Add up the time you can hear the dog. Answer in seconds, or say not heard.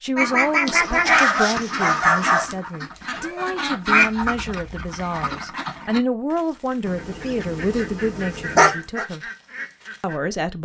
4 s.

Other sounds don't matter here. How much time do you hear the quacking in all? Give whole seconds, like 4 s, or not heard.
10 s.